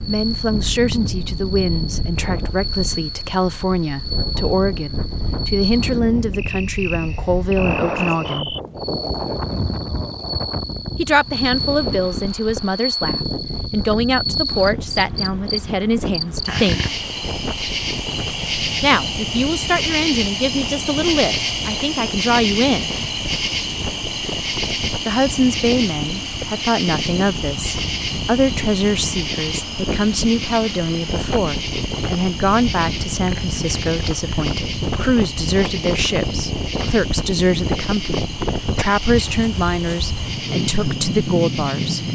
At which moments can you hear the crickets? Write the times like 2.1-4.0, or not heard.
0.0-42.0.